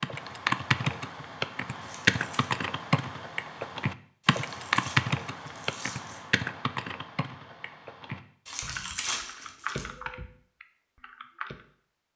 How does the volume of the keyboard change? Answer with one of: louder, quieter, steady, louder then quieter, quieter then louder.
quieter.